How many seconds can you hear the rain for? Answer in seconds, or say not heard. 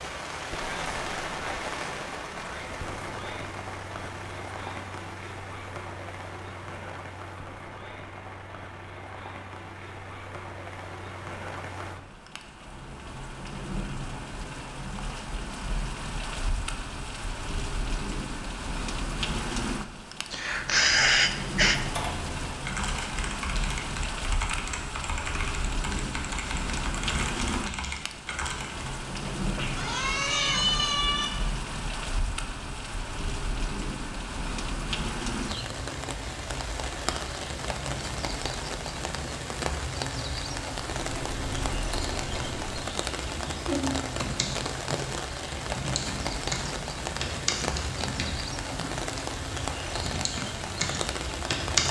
52 s.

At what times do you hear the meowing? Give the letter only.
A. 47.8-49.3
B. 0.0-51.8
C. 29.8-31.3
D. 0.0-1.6
C.